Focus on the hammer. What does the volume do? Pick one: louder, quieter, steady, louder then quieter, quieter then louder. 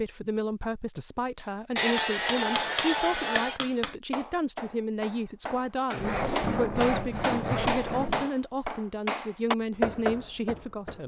louder.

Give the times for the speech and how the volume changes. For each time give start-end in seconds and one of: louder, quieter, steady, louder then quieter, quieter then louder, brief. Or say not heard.
0.0-11.0 steady.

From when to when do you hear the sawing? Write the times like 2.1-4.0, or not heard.
1.8-3.6, 6.0-8.3.